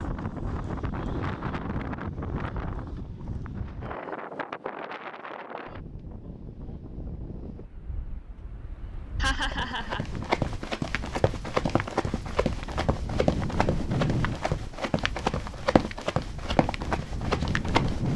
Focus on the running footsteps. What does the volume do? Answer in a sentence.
The loudness of the running footsteps stays about the same.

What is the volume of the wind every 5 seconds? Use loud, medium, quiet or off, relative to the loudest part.
loud, medium, loud, loud.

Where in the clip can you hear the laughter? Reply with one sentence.
You can hear the laughter from 9.2 to 10.1 s.